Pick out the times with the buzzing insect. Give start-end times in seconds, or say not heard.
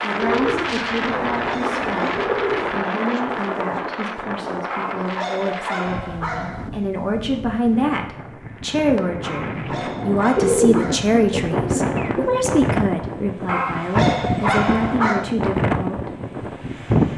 not heard.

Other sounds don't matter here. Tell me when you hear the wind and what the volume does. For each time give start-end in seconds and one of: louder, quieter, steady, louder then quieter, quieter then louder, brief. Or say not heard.
0.0-17.1 quieter then louder.